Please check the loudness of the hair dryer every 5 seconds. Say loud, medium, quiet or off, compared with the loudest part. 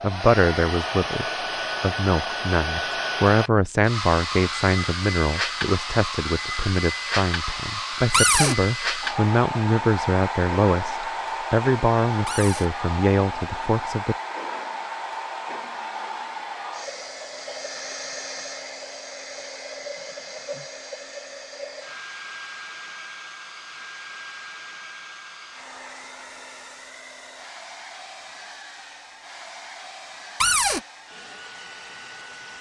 loud, loud, loud, medium, medium, quiet, quiet.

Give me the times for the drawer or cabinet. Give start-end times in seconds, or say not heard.
8.1-8.6, 12.2-12.7, 30.4-30.8.